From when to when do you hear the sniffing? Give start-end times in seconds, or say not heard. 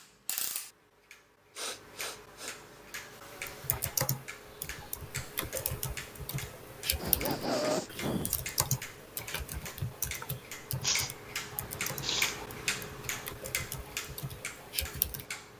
1.6-2.5, 7.0-8.3, 10.8-12.3.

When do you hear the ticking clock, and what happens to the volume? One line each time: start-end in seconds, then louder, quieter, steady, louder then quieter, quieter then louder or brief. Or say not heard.
0.0-15.5 louder.